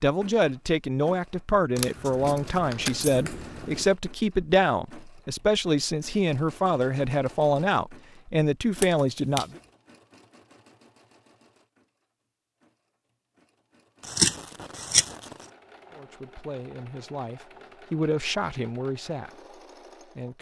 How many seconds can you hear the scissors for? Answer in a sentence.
You can hear the scissors for 4 seconds altogether.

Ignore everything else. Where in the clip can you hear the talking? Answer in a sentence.
The talking can be heard from 0.0 to 9.6 s and from 15.9 to 20.3 s.